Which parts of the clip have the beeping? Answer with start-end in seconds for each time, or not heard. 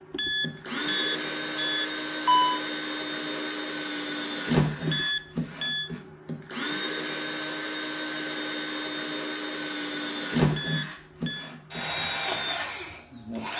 0.1-2.6, 4.8-5.9, 10.5-11.5.